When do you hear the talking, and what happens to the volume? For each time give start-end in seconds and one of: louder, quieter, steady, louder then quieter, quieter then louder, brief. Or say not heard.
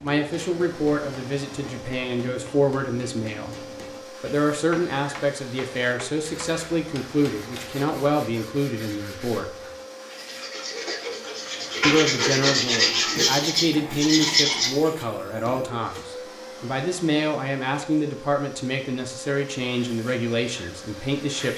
0.0-9.6 steady
11.8-21.5 steady.